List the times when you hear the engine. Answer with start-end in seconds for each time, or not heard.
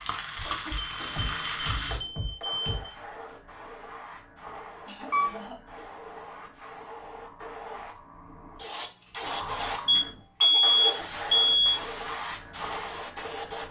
0.0-2.0.